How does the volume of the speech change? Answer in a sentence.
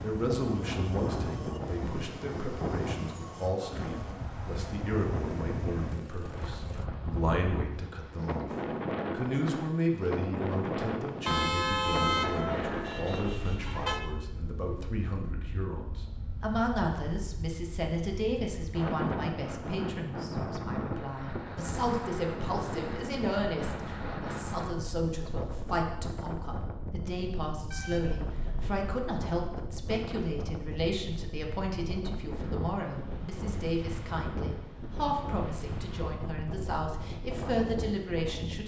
The volume of the speech stays about the same.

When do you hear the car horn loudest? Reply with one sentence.
The loudest moment of the car horn is at 12 seconds.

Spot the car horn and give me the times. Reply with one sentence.
The car horn can be heard from 11.2 to 14.0 s and from 27.7 to 28.7 s.